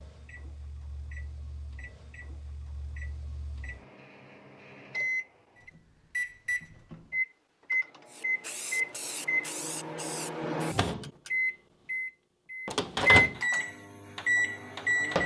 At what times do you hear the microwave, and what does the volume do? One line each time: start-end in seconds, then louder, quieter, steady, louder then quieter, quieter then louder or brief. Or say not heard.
0.0-15.2 louder.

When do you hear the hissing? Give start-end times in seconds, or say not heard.
8.1-10.9.